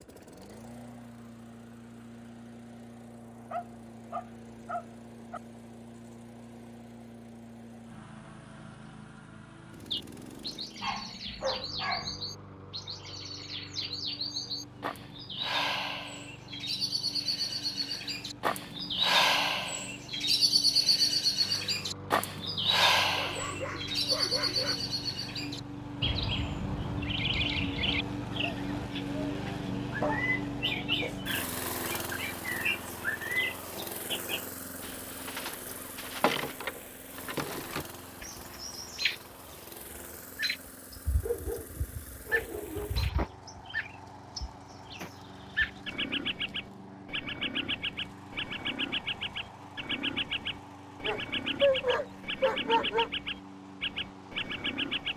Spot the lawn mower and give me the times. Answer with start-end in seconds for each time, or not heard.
0.0-55.1.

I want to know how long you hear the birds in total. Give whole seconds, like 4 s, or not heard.
45 s.